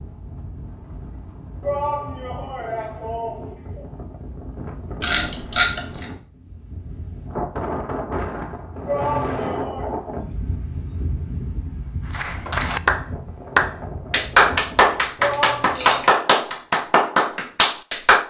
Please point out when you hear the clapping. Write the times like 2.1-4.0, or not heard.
12.1-18.2.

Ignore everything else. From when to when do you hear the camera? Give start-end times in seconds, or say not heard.
5.0-6.0, 15.3-16.1.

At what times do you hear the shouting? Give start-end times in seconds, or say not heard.
1.6-3.9, 8.8-9.9, 15.2-16.2.